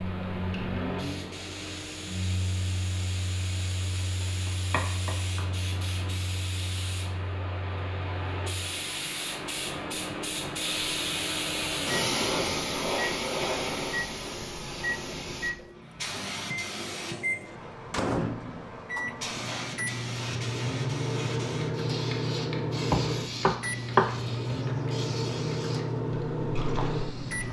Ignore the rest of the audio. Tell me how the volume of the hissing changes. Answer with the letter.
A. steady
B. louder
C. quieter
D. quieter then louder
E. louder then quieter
E.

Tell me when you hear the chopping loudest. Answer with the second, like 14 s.
24 s.